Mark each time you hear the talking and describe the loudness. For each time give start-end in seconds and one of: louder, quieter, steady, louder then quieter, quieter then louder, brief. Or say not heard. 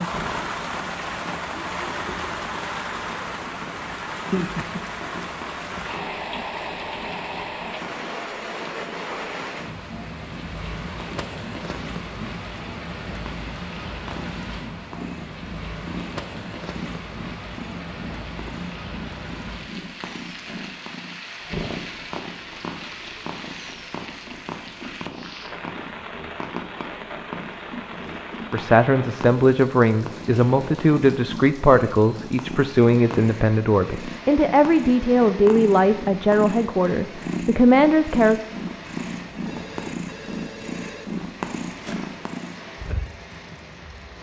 28.5-38.4 steady.